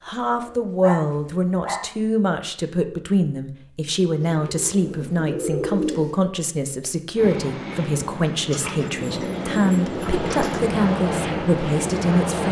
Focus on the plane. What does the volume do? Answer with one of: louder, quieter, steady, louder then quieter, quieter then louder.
louder.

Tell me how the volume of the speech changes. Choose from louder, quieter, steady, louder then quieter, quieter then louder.
steady.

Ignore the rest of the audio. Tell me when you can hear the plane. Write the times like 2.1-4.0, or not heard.
7.2-12.4.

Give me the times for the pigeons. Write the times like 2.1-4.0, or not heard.
0.1-1.9, 4.2-6.2, 8.5-10.7.